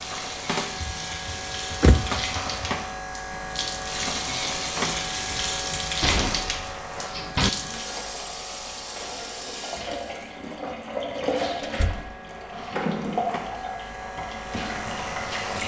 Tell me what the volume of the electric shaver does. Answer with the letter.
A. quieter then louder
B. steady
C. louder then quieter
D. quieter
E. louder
A.